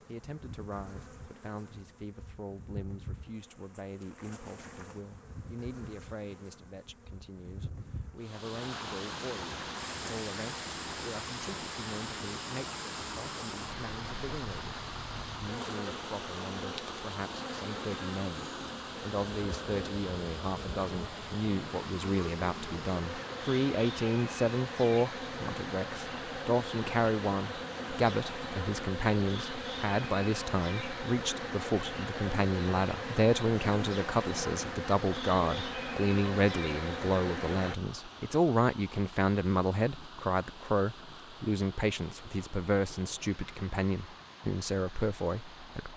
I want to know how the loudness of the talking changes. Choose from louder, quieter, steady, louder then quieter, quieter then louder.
louder.